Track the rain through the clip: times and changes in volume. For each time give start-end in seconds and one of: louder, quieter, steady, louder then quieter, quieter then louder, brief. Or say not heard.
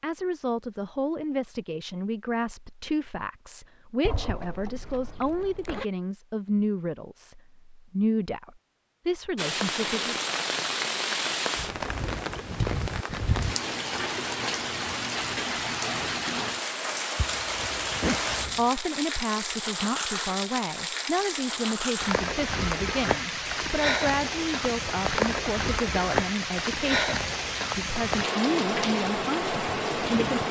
9.3-30.4 steady.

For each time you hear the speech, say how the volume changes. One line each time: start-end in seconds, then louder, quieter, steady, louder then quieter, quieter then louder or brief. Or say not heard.
0.0-10.2 steady
18.6-30.4 steady.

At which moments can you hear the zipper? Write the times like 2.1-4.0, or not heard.
4.0-5.8, 17.1-18.6.